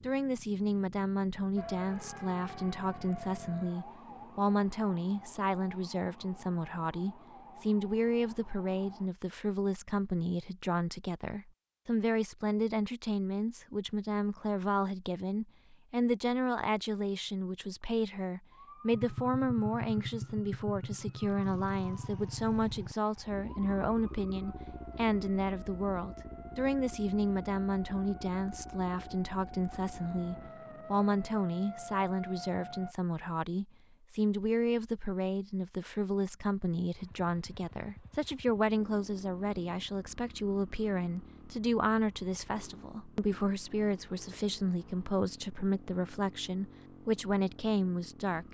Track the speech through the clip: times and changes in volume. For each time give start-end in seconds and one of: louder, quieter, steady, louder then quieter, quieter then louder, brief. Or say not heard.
0.0-48.4 steady.